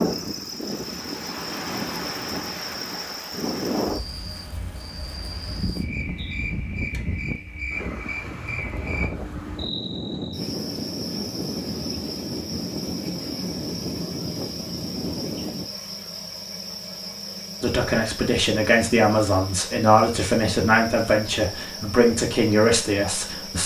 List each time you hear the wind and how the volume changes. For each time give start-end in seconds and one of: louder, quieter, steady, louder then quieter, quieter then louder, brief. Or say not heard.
0.0-15.7 steady.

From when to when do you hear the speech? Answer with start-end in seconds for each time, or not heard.
17.6-23.6.